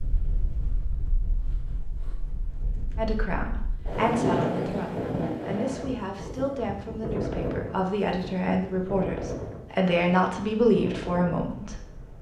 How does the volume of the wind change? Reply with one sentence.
The loudness of the wind goes up, then down.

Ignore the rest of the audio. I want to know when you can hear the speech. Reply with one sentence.
The speech can be heard from 3.0 to 11.8 s.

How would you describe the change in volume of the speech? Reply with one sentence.
The loudness of the speech goes up.